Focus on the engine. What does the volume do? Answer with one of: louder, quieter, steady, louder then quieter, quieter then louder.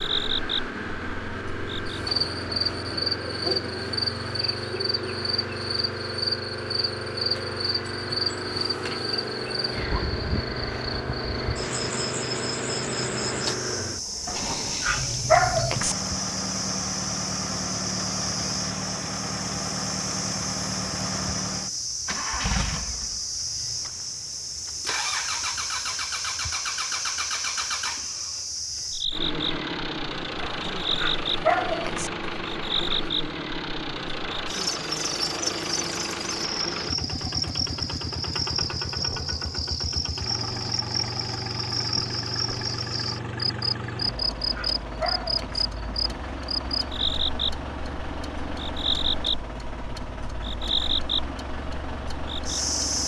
steady.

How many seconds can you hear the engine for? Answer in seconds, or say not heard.
53 s.